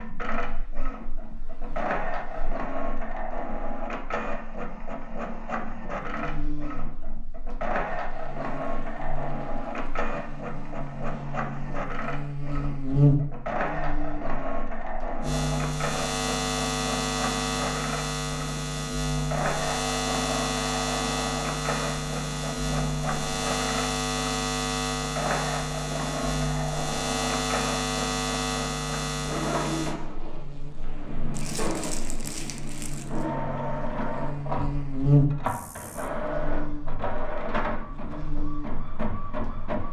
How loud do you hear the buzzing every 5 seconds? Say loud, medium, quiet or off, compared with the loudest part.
quiet, quiet, loud, loud, loud, loud, medium, loud.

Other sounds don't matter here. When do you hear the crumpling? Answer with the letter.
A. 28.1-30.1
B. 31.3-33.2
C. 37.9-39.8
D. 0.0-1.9
B.